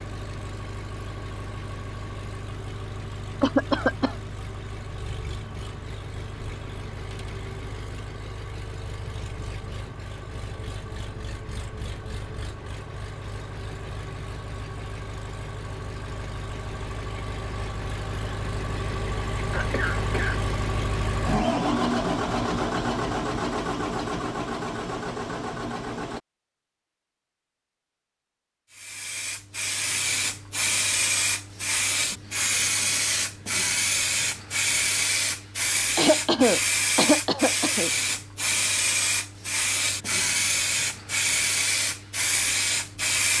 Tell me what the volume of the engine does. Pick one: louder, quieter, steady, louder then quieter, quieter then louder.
louder.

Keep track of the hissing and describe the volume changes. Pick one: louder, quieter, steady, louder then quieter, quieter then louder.
steady.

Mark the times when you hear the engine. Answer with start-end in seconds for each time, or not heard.
0.0-26.2.